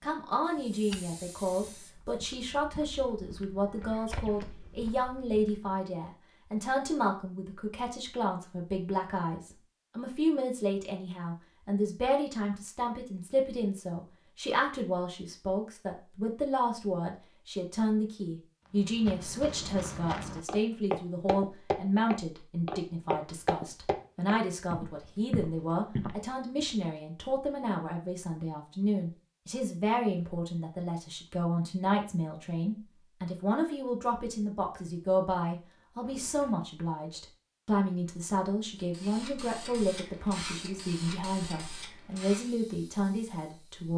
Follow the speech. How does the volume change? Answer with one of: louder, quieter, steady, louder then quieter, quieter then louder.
steady.